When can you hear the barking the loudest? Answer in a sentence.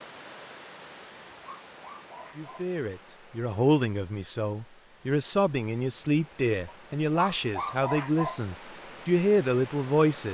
The loudest moment of the barking is at 8 seconds.